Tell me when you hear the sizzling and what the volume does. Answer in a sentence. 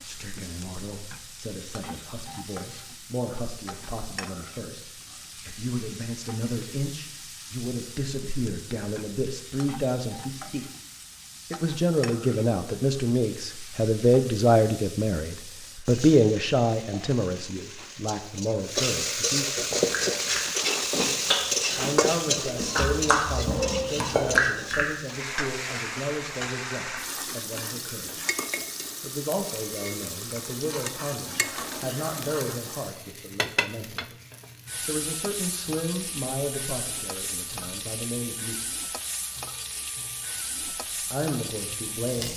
The sizzling can be heard from 0.0 to 42.3 s, getting louder then quieter.